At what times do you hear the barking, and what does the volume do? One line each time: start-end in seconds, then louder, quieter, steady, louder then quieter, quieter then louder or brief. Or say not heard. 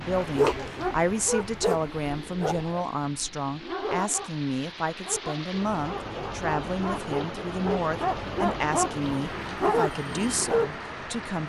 0.1-10.8 quieter then louder.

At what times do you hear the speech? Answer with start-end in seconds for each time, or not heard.
0.0-11.4.